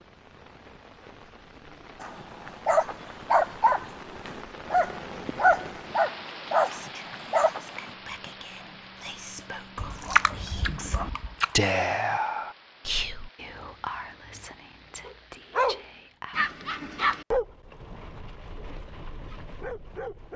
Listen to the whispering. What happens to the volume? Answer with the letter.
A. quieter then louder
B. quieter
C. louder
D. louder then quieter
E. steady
D.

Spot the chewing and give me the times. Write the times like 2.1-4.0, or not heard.
9.8-11.6.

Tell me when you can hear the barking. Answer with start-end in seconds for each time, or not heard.
2.0-7.9, 15.1-20.3.